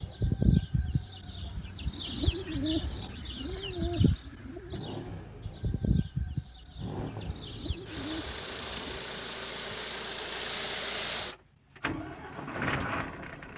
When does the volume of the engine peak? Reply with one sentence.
The loudest moment of the engine is at 11 seconds.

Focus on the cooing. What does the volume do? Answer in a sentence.
The volume of the cooing goes down.